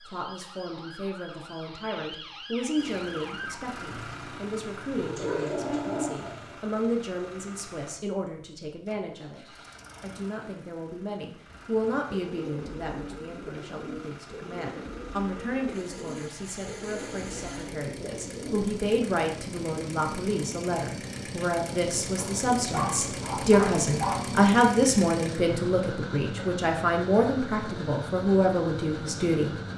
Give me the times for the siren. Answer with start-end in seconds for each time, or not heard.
0.0-3.6.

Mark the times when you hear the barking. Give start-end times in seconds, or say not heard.
5.0-6.5, 22.1-24.2.